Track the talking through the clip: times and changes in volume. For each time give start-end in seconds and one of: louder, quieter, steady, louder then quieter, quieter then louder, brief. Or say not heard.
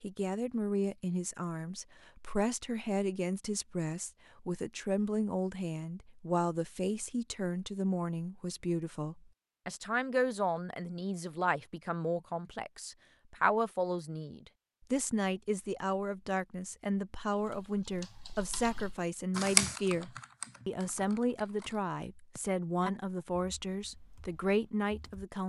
0.0-25.4 steady.